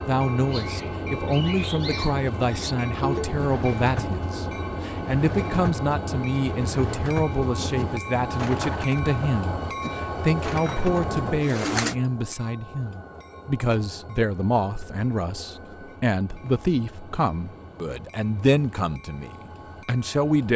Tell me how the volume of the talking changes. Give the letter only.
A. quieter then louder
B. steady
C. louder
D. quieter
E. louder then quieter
B.